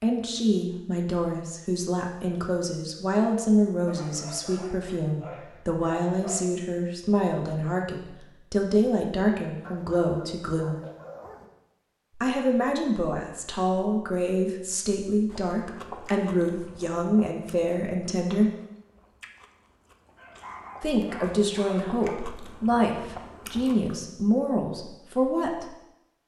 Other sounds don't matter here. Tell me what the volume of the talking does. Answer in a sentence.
The loudness of the talking stays about the same.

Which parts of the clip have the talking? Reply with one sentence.
The talking can be heard from 0.0 to 10.8 s, from 12.2 to 18.5 s and from 20.8 to 25.6 s.